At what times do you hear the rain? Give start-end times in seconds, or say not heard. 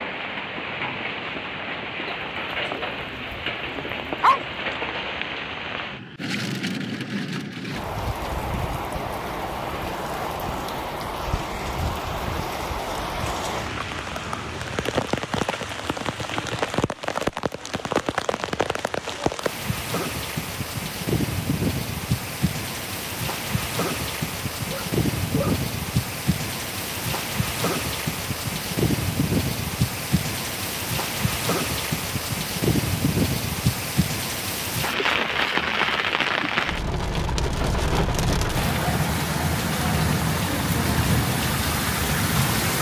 0.0-42.7.